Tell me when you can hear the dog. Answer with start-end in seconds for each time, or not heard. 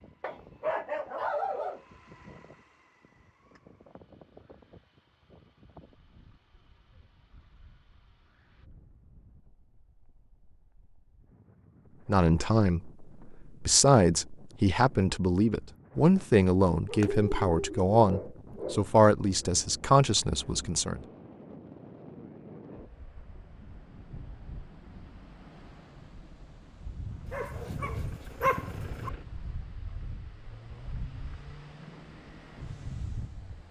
0.2-1.9, 16.9-18.9, 27.2-29.1.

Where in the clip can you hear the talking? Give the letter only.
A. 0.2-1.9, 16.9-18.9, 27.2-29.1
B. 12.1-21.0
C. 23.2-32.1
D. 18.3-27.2
B.